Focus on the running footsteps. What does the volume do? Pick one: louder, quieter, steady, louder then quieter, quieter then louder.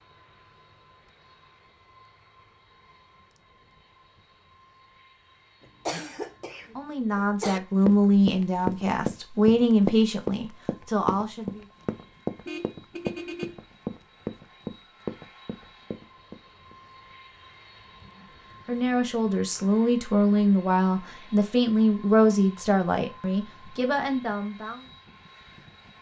quieter.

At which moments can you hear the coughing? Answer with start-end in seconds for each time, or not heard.
5.6-7.6.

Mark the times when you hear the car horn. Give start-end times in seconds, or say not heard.
12.4-13.6.